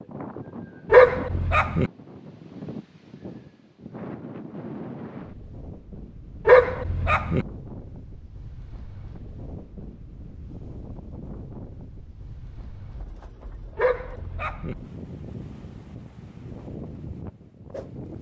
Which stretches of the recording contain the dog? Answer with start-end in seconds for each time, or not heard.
0.9-1.9, 6.5-7.5, 13.8-14.8.